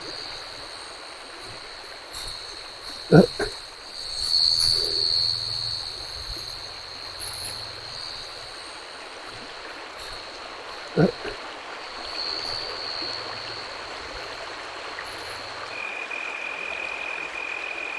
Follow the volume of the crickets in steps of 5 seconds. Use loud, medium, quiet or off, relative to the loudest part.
loud, medium, medium, medium.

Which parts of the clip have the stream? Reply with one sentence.
You can hear the stream from 0.0 to 17.9 s.